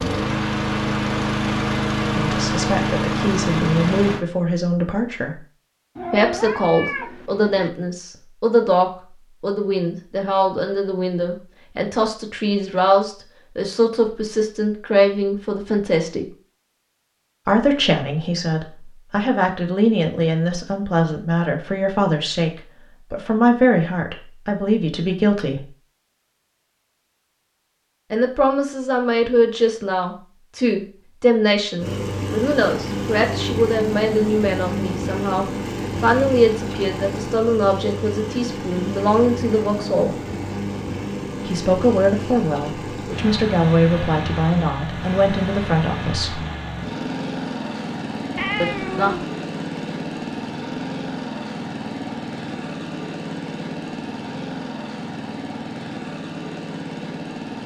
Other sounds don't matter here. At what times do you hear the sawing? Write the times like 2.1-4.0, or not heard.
not heard.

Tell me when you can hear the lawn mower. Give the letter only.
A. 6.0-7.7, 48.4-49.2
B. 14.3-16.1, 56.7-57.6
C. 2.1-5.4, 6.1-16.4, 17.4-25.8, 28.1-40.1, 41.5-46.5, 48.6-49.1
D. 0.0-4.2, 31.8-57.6
D.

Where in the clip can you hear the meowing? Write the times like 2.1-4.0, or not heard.
6.0-7.7, 48.4-49.2.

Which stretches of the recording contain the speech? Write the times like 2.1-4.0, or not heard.
2.1-5.4, 6.1-16.4, 17.4-25.8, 28.1-40.1, 41.5-46.5, 48.6-49.1.